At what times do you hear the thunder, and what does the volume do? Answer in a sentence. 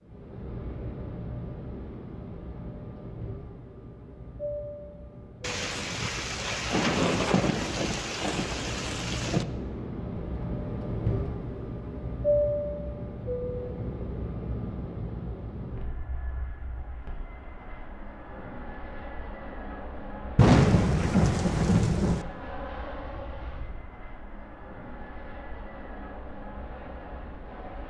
The thunder can be heard from 5.4 to 9.4 s, getting louder then quieter; and briefly from 20.4 to 22.2 s.